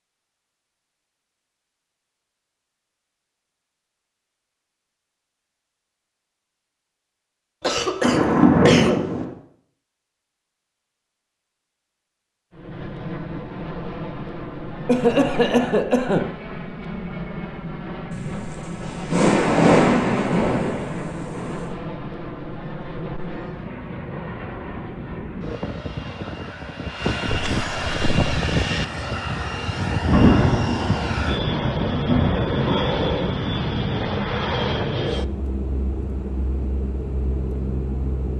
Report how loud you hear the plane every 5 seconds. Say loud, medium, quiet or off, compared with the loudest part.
off, off, medium, medium, medium, loud, loud, medium.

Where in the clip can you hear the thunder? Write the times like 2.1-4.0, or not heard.
8.0-9.2, 18.1-21.6, 30.1-33.8.